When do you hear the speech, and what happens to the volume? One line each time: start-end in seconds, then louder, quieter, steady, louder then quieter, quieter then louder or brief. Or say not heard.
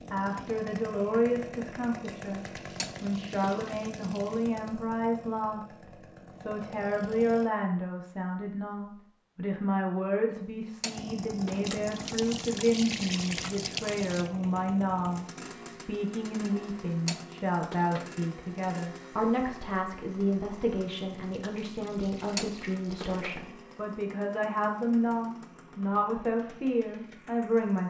0.1-27.8 steady.